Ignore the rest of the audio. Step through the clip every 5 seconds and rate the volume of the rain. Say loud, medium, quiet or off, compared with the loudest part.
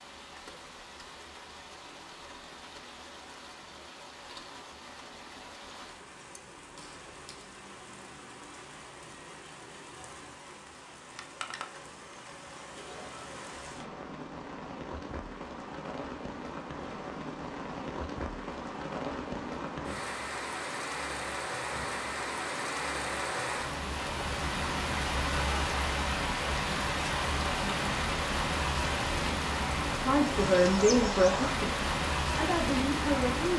quiet, quiet, quiet, medium, loud, loud, loud.